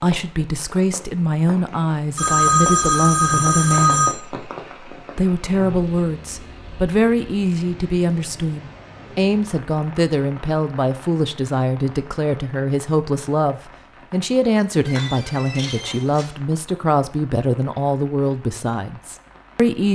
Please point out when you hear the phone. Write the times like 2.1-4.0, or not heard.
2.1-4.2, 14.8-16.2.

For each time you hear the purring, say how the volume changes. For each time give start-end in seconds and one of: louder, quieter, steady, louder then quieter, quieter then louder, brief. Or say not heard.
not heard.